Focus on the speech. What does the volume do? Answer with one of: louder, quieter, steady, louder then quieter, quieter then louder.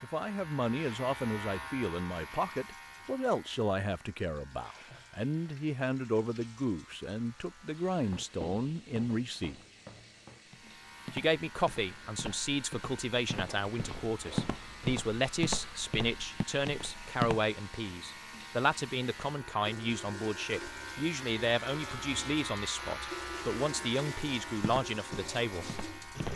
steady.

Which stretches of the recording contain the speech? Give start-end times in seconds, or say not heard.
0.0-9.6, 11.1-25.7.